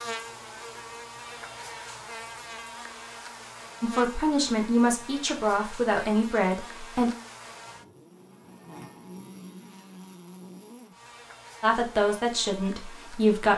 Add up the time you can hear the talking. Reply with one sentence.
The talking can be heard for 5 seconds in total.